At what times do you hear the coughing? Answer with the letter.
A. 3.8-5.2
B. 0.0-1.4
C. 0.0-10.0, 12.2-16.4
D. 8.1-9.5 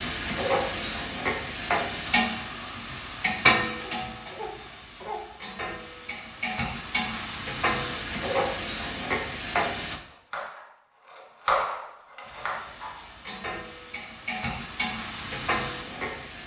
A.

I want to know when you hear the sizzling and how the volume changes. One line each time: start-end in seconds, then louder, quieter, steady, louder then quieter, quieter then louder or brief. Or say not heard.
0.0-10.0 quieter then louder
12.2-16.4 louder.